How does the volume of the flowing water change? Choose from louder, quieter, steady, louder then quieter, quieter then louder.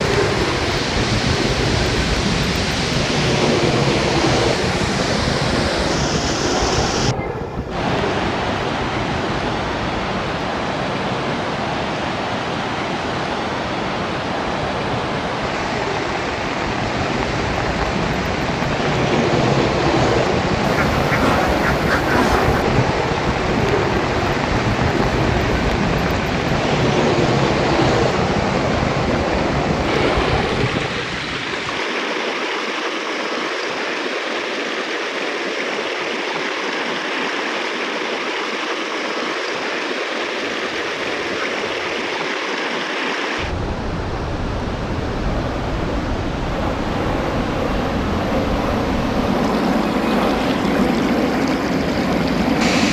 steady.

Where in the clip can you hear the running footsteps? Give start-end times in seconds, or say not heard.
not heard.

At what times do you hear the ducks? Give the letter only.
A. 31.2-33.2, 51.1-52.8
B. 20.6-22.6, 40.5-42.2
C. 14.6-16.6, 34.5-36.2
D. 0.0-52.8
B.